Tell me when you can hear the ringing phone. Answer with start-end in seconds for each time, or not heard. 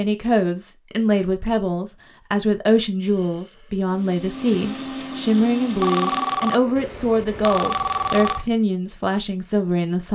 5.8-8.4.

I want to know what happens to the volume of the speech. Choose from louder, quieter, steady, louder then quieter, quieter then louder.
steady.